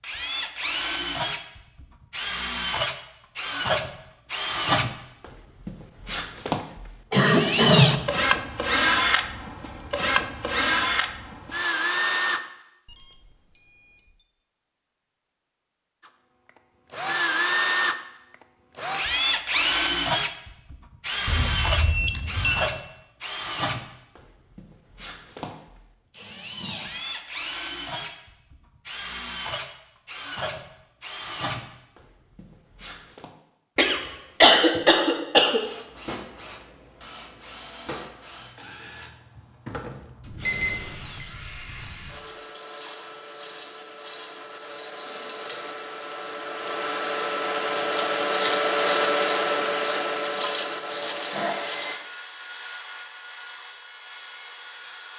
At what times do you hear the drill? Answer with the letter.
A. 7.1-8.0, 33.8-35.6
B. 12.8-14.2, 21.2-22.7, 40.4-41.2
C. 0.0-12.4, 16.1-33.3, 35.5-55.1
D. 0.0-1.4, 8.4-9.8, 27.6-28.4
C.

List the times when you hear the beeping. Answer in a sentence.
You can hear the beeping from 12.8 to 14.2 s, from 21.2 to 22.7 s and from 40.4 to 41.2 s.